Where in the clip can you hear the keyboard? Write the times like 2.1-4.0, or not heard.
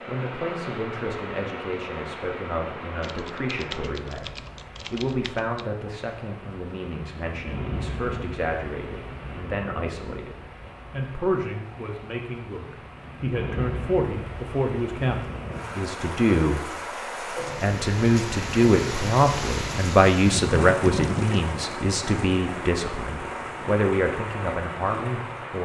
3.0-5.6, 20.5-21.4.